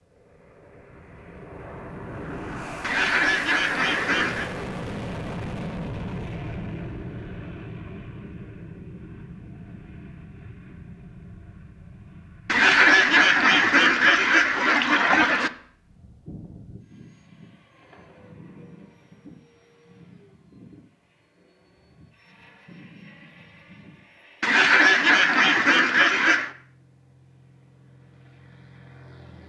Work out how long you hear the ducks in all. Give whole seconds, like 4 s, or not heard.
7 s.